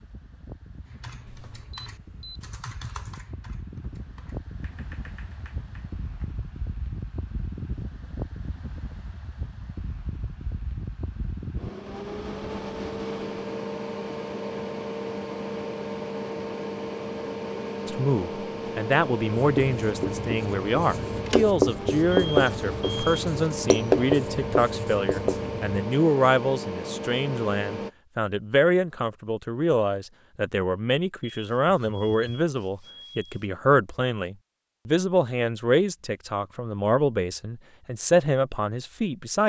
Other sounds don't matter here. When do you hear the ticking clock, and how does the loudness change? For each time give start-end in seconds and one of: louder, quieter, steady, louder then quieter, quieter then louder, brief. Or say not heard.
not heard.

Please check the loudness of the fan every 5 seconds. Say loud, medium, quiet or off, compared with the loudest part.
quiet, medium, loud, loud, loud, loud, off, off.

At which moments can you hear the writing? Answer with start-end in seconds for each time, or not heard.
19.4-25.7.